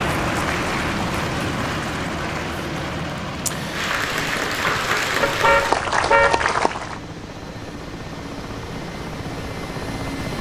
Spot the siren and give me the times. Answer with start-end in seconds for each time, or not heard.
not heard.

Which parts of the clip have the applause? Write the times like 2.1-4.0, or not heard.
0.0-7.0.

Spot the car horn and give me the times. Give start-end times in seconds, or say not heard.
5.2-6.5.